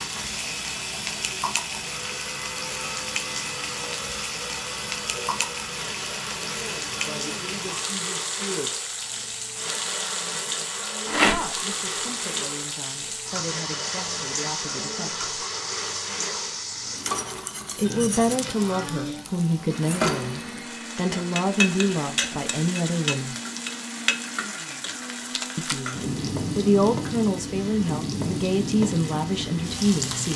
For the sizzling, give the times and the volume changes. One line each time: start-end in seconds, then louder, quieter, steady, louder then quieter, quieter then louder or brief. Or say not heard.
0.0-30.3 steady.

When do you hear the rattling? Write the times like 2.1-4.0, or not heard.
11.1-11.5, 25.3-25.8.